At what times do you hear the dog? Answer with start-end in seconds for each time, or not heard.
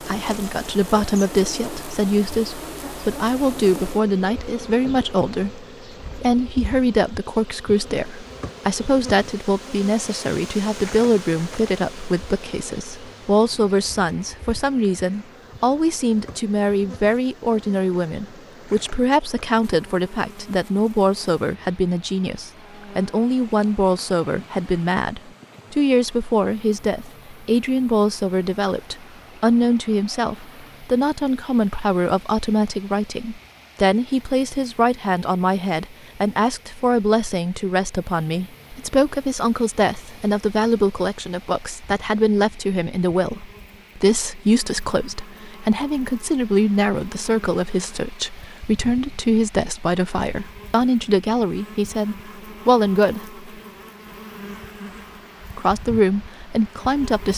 not heard.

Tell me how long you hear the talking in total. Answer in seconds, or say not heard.
55 s.